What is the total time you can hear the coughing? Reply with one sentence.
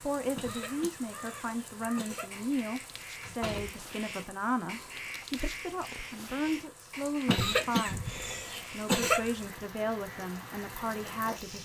You can hear the coughing for 4 seconds altogether.